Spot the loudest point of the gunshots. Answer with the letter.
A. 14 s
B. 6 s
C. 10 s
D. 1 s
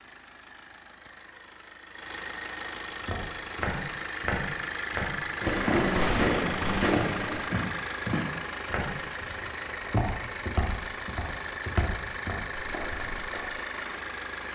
B.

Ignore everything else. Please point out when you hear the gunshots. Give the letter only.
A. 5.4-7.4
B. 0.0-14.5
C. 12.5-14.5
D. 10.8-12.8
A.